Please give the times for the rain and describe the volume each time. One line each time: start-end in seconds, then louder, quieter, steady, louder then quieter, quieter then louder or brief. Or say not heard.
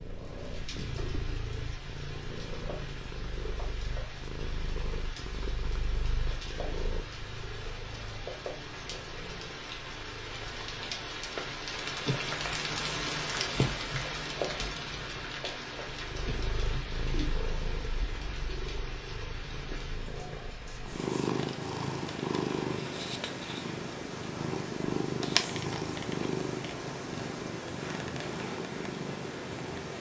0.0-29.9 louder then quieter.